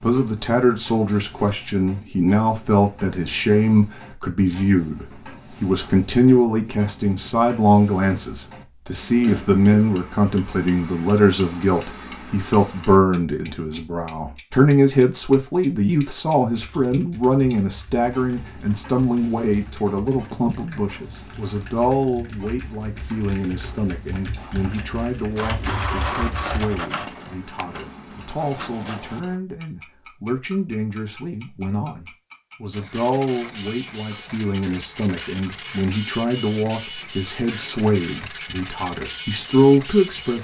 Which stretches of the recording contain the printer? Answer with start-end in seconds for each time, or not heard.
24.4-29.2, 32.7-40.3.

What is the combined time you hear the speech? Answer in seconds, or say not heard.
40 s.